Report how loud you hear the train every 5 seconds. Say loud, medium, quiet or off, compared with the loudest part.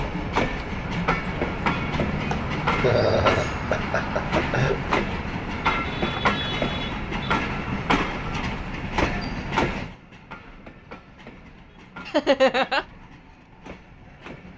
loud, loud, quiet.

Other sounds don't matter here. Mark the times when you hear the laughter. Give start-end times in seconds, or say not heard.
2.3-5.0, 12.1-12.8.